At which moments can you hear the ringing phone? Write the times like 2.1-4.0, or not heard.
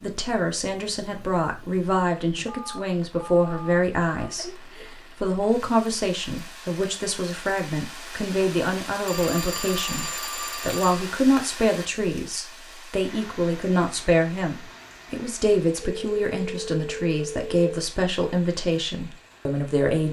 2.5-4.3, 9.1-11.0, 15.8-17.6.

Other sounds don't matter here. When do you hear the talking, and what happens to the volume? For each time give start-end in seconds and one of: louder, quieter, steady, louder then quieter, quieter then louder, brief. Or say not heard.
0.0-20.0 steady.